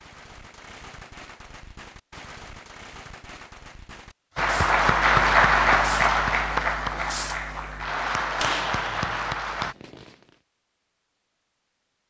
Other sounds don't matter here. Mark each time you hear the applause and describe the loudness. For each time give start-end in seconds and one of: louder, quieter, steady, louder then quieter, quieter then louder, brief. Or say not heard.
4.3-9.8 quieter.